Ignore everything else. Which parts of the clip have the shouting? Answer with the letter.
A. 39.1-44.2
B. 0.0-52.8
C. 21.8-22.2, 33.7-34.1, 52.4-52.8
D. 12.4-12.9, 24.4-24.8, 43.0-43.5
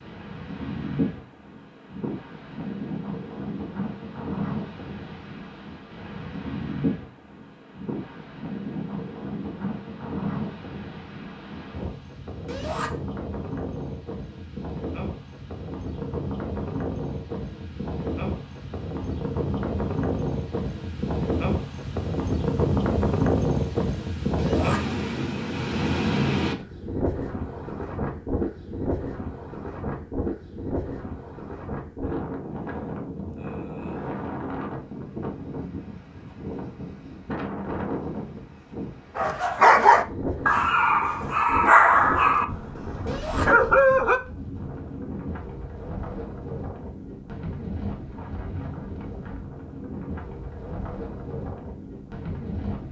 D.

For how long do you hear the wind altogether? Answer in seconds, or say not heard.
53 s.